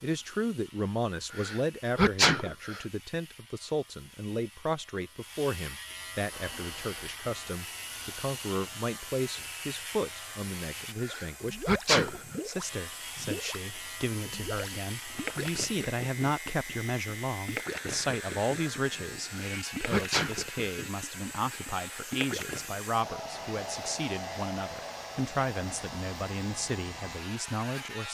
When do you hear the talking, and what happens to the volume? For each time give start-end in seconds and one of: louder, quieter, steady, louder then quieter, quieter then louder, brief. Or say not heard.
0.0-28.1 steady.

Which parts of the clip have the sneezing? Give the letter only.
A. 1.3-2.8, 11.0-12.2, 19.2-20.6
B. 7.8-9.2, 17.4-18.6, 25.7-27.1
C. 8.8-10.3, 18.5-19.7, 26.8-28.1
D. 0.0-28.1
A.